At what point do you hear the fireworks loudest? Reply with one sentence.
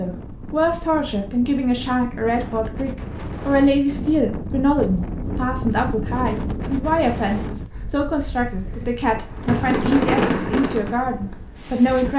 The loudest moment of the fireworks is at 10 seconds.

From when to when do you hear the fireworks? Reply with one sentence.
You can hear the fireworks from 9.2 to 12.1 s.